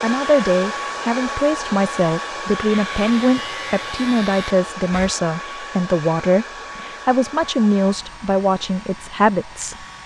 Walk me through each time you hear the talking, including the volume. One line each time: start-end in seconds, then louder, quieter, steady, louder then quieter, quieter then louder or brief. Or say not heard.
0.0-9.8 steady.